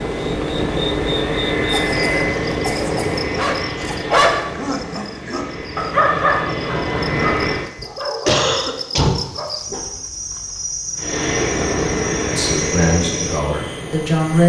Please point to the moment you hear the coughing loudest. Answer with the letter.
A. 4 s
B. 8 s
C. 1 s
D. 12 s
B.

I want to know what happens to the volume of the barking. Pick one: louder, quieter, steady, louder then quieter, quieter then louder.
quieter.